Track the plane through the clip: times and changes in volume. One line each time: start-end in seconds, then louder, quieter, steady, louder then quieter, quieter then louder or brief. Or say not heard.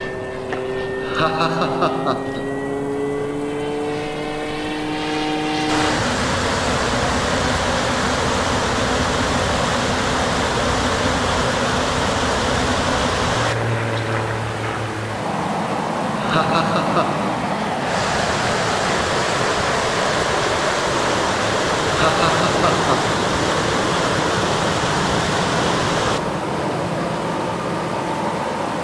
0.0-28.7 steady.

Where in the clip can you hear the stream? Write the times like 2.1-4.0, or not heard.
5.7-28.7.